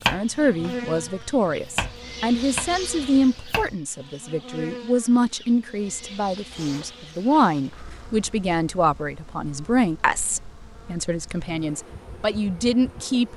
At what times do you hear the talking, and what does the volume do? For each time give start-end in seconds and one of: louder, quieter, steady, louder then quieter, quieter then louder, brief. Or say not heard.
0.1-13.3 steady.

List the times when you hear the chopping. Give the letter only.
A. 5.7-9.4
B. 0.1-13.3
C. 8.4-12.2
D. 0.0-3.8
D.